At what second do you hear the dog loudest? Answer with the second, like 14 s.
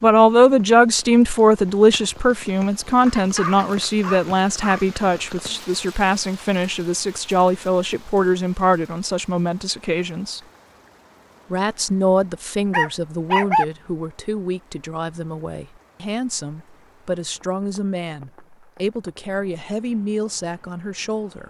13 s.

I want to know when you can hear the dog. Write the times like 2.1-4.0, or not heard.
3.0-5.0, 12.7-13.7.